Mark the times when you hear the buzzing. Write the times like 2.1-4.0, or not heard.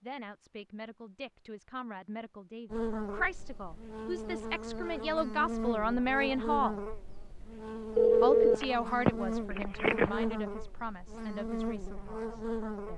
2.7-12.9.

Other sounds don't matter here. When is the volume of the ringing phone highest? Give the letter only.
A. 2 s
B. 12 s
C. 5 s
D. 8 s
D.